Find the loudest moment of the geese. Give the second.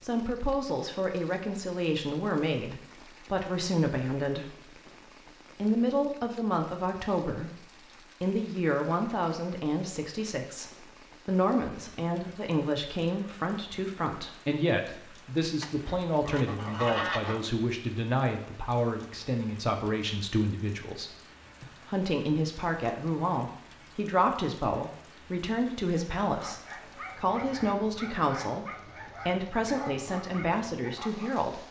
17 s.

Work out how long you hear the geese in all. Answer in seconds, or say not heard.
2 s.